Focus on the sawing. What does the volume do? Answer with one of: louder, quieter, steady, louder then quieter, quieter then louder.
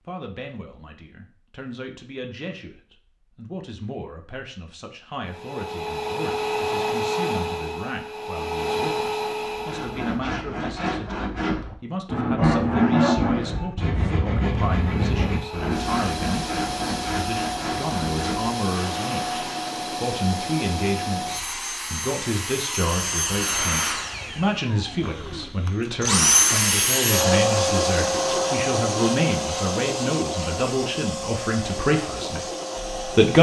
louder then quieter.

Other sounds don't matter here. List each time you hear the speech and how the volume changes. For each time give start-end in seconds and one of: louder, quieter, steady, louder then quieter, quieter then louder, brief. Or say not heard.
0.1-33.3 louder.